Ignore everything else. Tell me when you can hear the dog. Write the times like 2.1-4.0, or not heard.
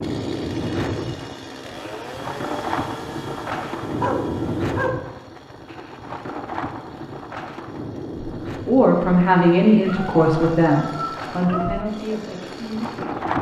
4.0-5.1, 9.8-11.8.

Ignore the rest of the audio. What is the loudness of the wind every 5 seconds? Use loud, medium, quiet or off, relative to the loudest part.
loud, medium, loud.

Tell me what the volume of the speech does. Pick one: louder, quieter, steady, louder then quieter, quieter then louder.
quieter.